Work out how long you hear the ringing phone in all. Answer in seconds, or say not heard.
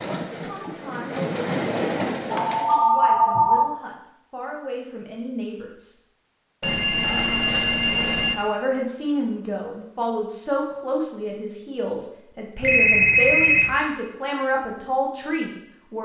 4 s.